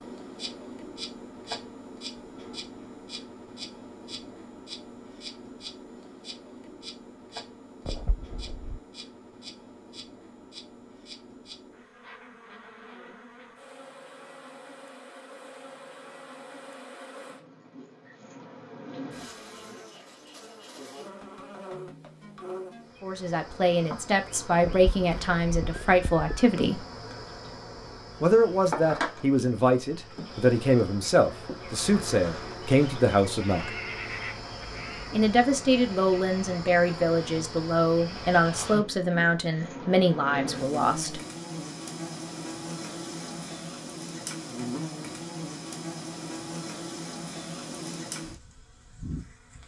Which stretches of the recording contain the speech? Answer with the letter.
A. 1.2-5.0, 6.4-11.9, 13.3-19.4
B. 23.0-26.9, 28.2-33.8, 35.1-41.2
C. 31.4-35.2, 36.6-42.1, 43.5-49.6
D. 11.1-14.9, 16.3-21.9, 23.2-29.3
B.